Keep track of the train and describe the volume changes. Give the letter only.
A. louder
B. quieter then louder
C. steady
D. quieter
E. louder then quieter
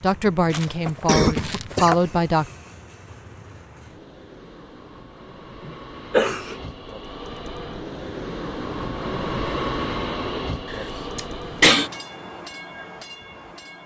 E.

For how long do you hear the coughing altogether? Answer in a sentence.
The coughing can be heard for 4 seconds in total.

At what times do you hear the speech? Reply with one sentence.
You can hear the speech from 0.0 to 2.5 s.